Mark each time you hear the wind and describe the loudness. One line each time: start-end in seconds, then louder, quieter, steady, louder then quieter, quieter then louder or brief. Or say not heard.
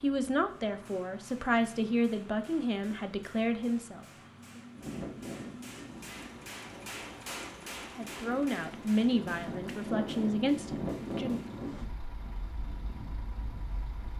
4.7-14.1 louder then quieter.